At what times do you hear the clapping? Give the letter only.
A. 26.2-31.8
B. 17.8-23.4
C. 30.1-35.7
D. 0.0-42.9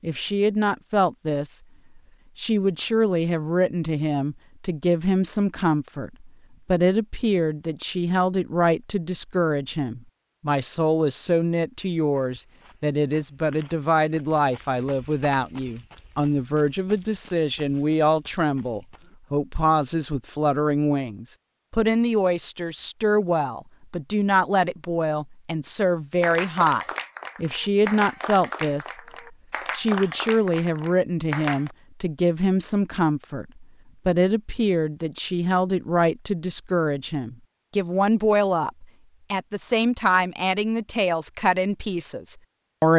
A.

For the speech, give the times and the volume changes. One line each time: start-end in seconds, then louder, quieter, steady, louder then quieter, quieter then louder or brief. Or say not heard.
0.0-42.9 steady.